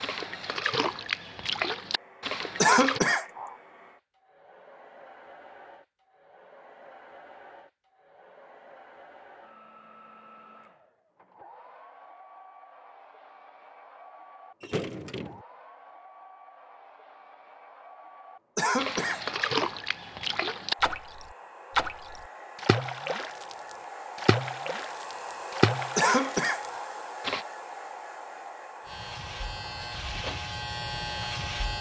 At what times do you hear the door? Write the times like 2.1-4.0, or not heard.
14.6-15.4.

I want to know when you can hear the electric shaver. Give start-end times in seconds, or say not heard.
28.9-31.7.